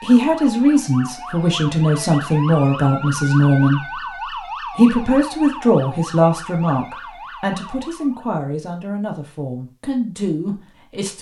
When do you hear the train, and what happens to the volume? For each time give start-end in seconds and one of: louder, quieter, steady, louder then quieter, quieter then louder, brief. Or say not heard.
not heard.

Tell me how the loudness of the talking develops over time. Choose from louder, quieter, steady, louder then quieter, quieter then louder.
quieter.